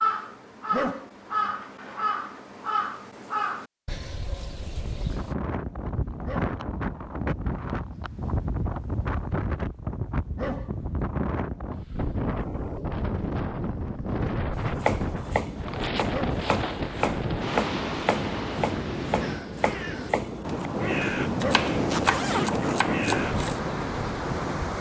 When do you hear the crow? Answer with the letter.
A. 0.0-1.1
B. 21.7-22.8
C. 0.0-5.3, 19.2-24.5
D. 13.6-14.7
C.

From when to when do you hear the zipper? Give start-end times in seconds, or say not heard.
21.7-22.8.